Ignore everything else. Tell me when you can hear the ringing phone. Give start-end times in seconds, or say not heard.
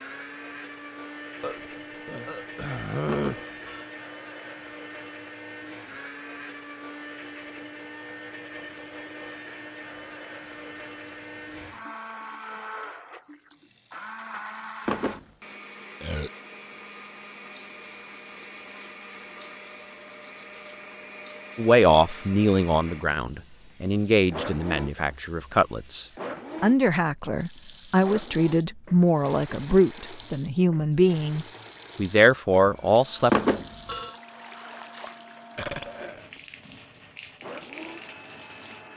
3.0-3.9, 14.8-15.2, 33.3-34.1.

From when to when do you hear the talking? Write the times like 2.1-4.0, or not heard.
21.6-33.3.